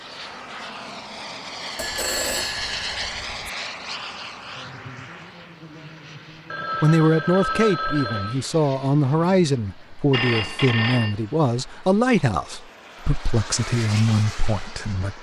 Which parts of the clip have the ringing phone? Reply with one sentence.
You can hear the ringing phone from 1.8 to 3.5 s, from 6.5 to 8.3 s and from 10.1 to 11.2 s.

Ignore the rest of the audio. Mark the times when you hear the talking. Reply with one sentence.
You can hear the talking from 6.8 to 15.1 s.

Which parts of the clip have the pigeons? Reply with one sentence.
The pigeons can't be heard in this clip.